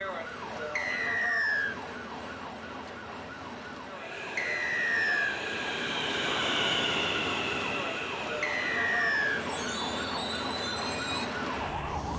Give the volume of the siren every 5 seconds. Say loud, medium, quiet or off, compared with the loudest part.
medium, loud, loud.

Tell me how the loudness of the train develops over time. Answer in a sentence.
The volume of the train goes up, then down.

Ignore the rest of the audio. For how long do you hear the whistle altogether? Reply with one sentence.
The whistle can be heard for 3 seconds in total.